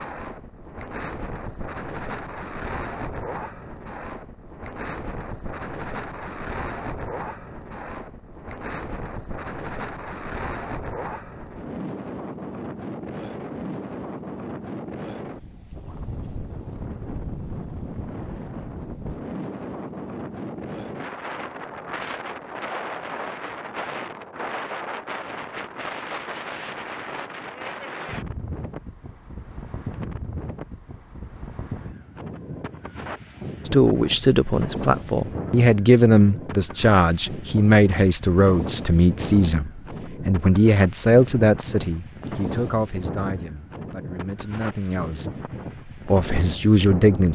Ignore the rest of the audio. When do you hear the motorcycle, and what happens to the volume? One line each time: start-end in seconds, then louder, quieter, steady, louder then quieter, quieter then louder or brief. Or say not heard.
not heard.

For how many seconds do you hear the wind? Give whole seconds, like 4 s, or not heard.
47 s.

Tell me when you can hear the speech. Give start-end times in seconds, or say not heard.
33.6-47.3.